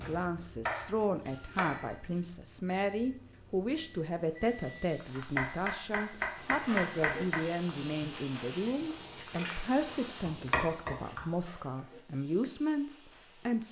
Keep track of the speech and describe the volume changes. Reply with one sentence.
The volume of the speech stays about the same.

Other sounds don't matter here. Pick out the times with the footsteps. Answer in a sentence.
The footsteps can be heard from 4.3 to 10.9 s.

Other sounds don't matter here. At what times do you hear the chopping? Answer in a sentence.
You can hear the chopping from 0.7 to 2.2 s, from 5.2 to 7.5 s and from 10.2 to 11.2 s.